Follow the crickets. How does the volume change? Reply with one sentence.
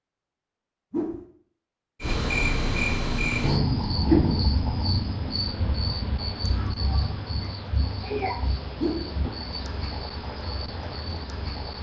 The loudness of the crickets goes down.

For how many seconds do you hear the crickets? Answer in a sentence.
The crickets can be heard for 10 seconds in total.